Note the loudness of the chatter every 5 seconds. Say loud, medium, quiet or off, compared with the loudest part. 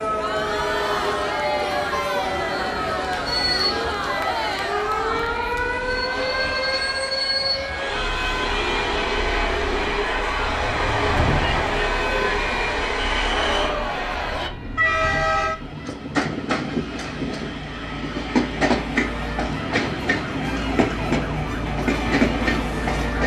loud, medium, loud, off, off.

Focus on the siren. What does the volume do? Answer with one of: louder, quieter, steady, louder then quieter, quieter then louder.
quieter then louder.